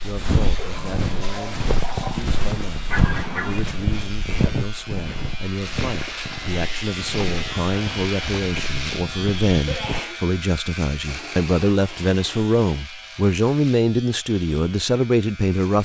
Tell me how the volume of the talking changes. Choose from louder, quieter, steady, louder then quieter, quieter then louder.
louder.